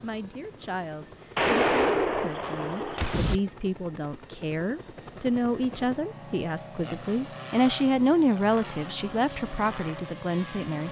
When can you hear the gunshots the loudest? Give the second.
2 s.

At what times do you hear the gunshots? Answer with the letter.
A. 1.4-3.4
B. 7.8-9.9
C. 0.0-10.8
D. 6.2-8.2
A.